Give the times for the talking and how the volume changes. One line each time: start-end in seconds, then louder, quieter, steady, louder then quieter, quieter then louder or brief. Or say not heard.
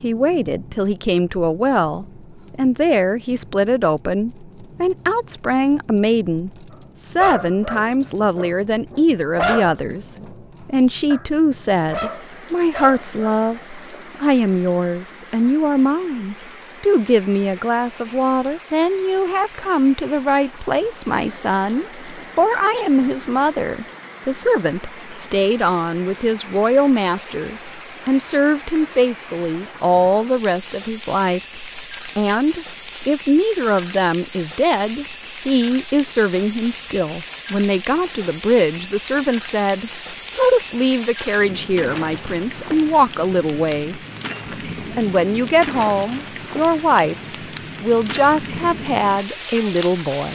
0.0-47.1 steady
47.8-50.3 brief.